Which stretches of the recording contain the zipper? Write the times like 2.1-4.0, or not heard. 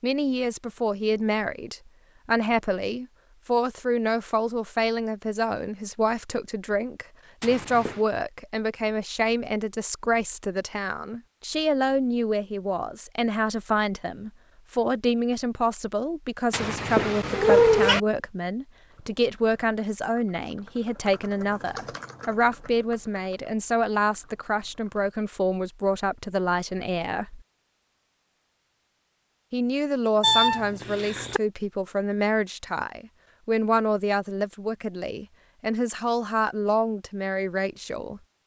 not heard.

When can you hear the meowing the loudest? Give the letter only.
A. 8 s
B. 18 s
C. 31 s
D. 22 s
B.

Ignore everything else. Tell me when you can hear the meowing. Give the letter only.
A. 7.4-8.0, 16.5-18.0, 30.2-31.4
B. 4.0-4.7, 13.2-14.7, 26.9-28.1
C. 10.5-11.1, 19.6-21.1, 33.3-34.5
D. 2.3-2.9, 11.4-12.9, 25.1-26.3
A.